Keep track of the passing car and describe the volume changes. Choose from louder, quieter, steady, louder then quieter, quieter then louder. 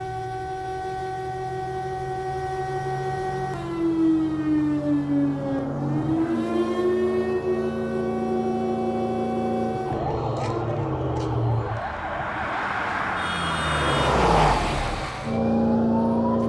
louder.